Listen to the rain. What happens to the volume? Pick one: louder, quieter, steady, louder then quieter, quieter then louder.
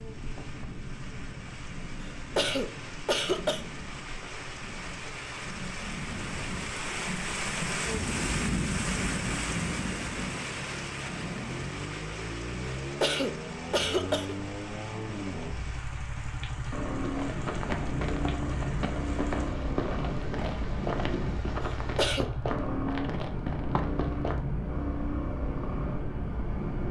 louder then quieter.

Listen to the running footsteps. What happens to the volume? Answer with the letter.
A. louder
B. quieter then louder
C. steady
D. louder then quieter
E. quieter
C.